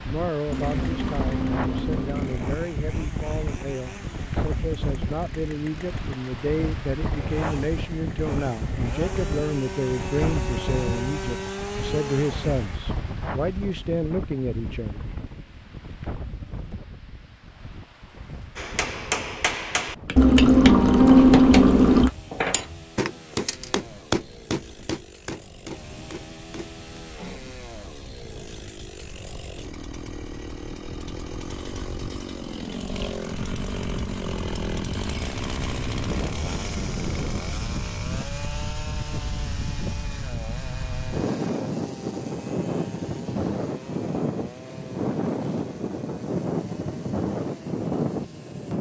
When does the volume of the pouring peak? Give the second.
21 s.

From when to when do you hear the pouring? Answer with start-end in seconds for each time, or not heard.
0.5-2.4, 20.1-22.1, 32.9-33.5.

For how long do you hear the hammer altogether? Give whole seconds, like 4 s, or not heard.
9 s.